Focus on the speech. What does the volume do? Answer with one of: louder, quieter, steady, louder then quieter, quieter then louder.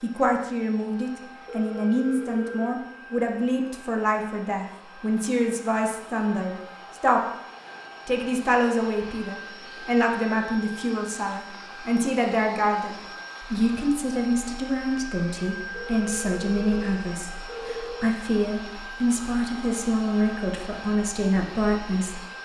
steady.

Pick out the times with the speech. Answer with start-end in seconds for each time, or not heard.
0.0-7.2, 8.1-22.2.